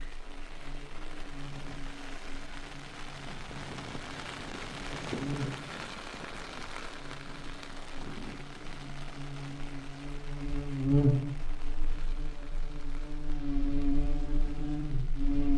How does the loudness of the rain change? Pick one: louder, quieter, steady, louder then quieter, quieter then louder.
louder then quieter.